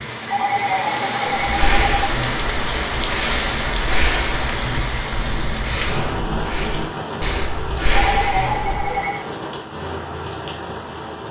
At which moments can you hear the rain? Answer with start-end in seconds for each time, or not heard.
0.0-11.2.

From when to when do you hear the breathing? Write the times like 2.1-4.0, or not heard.
1.4-9.0.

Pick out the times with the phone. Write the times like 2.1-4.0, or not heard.
0.2-2.1, 7.9-9.2.